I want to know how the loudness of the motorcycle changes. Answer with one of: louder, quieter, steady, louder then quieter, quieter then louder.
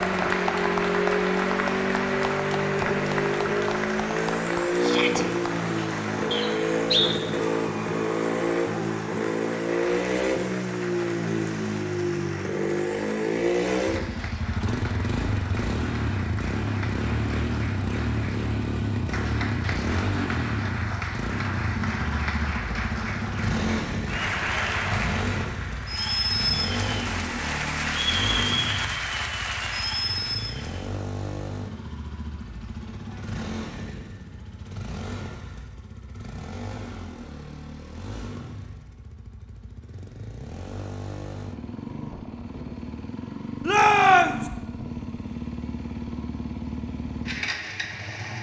quieter.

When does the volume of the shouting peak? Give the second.
44 s.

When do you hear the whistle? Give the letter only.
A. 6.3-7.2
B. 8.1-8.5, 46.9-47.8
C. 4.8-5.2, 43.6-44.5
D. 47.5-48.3
A.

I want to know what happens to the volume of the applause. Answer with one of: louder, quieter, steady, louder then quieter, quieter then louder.
quieter then louder.